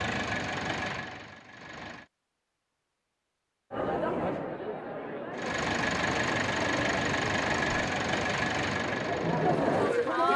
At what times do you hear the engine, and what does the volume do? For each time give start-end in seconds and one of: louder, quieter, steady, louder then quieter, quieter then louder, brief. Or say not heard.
0.0-2.0 brief
5.3-10.3 quieter.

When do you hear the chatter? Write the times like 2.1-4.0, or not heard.
3.7-10.3.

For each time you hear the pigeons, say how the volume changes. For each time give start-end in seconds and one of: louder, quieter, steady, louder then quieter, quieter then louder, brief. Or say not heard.
not heard.